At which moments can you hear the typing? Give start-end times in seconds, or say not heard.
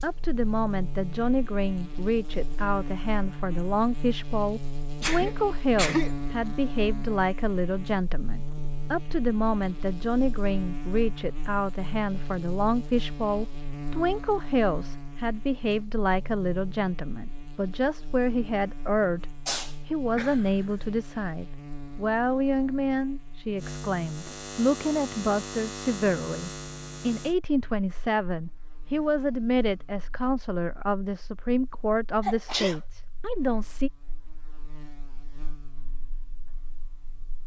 not heard.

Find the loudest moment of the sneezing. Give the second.
6 s.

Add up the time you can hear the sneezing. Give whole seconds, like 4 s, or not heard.
3 s.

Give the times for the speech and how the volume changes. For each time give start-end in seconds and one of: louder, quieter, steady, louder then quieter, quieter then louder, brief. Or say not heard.
0.0-33.9 steady.